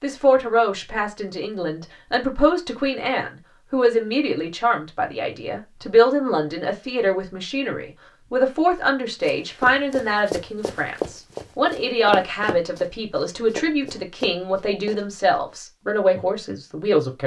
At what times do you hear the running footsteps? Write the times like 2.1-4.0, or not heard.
9.2-15.1.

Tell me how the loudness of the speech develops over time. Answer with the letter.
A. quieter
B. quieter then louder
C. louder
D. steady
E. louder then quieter
D.